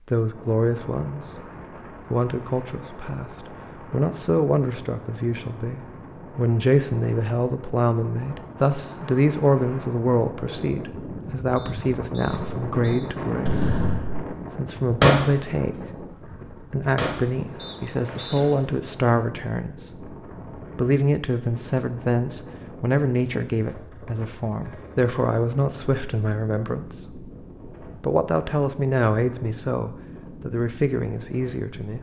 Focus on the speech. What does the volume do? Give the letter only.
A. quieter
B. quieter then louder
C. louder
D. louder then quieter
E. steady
E.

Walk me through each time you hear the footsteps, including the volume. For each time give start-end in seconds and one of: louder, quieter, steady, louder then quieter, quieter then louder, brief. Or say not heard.
not heard.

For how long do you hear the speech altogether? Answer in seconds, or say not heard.
31 s.